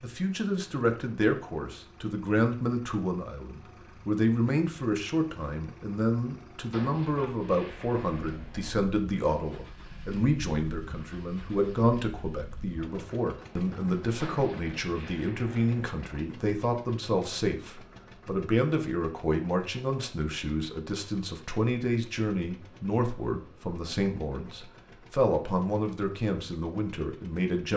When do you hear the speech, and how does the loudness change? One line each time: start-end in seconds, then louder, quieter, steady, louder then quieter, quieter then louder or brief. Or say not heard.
0.0-27.7 steady.